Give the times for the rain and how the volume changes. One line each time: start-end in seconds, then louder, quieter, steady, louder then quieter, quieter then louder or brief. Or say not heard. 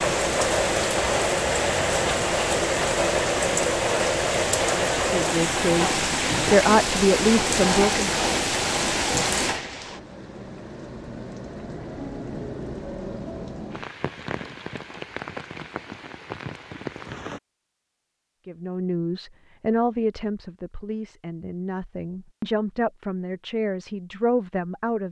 0.0-17.4 quieter.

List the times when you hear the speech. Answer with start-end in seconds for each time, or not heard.
4.9-8.1, 18.4-25.0.